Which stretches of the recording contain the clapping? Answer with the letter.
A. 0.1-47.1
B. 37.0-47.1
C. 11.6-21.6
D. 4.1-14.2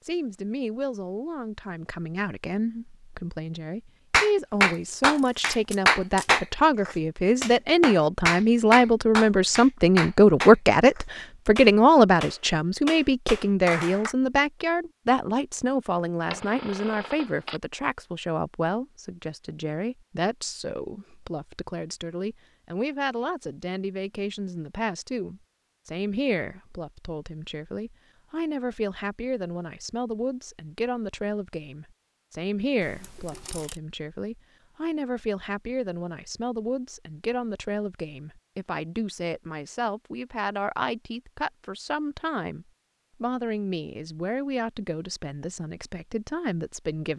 D.